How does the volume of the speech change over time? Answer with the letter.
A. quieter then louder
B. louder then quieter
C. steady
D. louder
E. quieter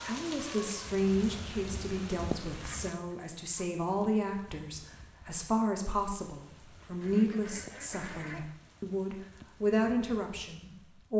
C.